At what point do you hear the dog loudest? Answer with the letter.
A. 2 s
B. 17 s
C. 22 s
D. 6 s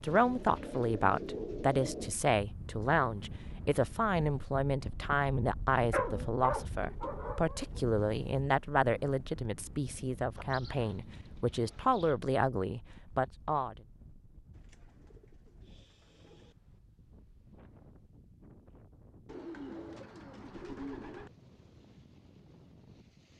D.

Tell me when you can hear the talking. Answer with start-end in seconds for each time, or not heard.
0.0-13.8.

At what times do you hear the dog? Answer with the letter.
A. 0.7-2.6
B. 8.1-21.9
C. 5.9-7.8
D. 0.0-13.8
C.